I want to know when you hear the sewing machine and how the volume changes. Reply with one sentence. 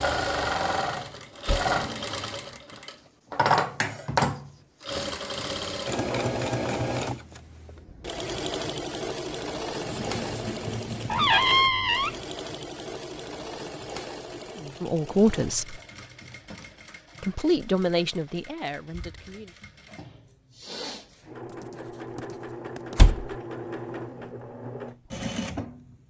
You can hear the sewing machine from 0.0 to 26.0 s, getting quieter then louder.